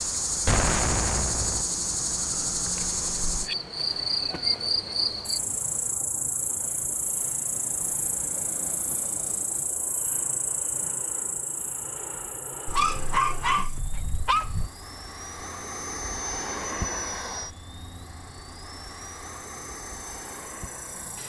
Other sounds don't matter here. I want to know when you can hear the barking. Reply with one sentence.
The barking can be heard from 12.7 to 14.7 s.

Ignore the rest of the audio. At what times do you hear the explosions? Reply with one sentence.
You can hear the explosions from 0.5 to 1.6 s.